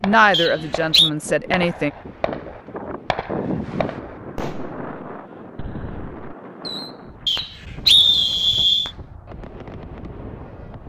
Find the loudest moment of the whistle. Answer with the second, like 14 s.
8 s.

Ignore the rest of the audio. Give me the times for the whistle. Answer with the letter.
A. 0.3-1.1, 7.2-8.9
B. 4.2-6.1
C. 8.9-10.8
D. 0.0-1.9
A.